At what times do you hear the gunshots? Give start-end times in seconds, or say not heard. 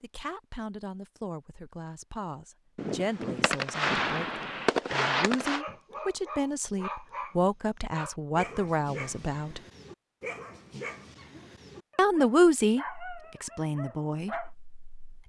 2.8-5.7.